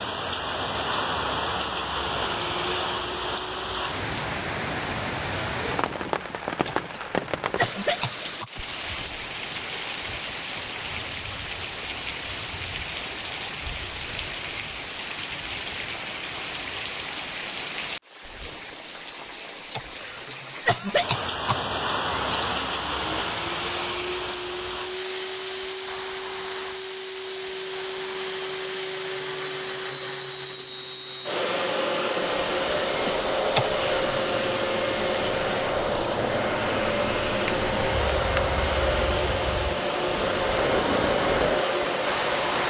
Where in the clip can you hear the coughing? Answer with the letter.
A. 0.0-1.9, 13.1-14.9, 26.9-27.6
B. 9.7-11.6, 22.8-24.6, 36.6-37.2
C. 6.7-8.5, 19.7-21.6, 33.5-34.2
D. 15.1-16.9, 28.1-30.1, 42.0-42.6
C.